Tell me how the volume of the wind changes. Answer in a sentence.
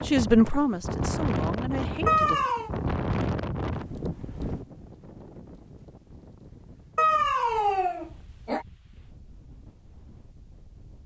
The loudness of the wind goes down.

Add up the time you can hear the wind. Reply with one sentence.
The wind can be heard for 11 seconds in total.